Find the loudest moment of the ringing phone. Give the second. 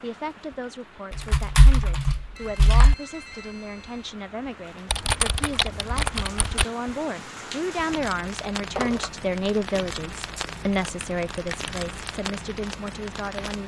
9 s.